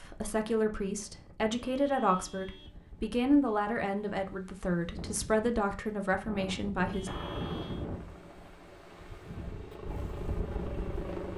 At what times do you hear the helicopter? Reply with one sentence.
You can hear the helicopter from 7.0 to 11.3 s.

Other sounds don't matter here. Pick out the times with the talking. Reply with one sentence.
You can hear the talking from 0.0 to 7.1 s.